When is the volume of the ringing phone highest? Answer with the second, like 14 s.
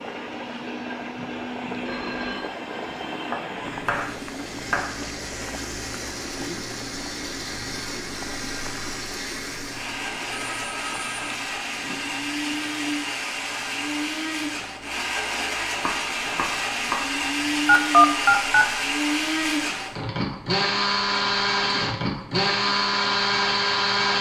18 s.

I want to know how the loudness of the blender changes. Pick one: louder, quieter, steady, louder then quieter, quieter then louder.
louder.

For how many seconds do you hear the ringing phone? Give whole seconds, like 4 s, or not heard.
3 s.